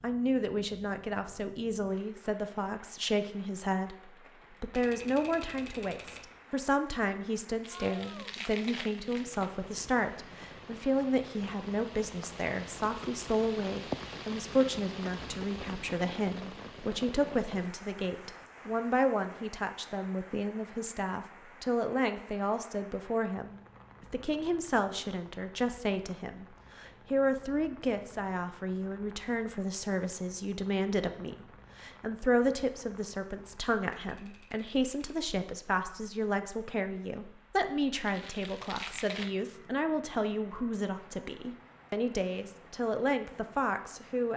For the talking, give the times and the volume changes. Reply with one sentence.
The talking can be heard from 0.0 to 44.3 s, at a steady volume.